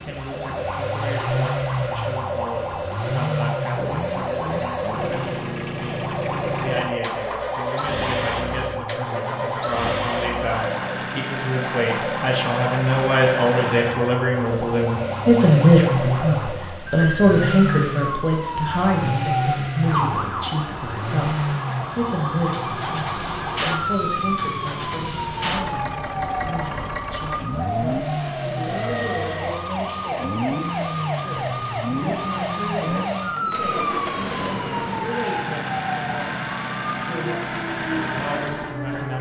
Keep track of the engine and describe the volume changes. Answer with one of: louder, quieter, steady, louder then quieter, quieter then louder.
steady.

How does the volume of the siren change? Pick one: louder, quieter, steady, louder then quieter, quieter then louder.
steady.